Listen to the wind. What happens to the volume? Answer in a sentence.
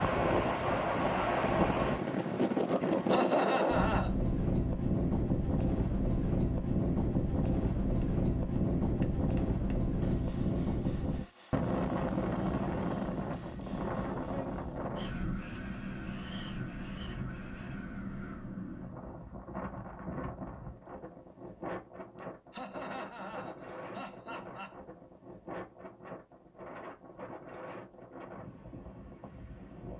The volume of the wind goes down.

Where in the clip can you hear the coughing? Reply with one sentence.
The coughing can be heard from 3.1 to 4.2 s and from 22.5 to 24.8 s.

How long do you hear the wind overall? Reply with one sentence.
The wind can be heard for 30 seconds in total.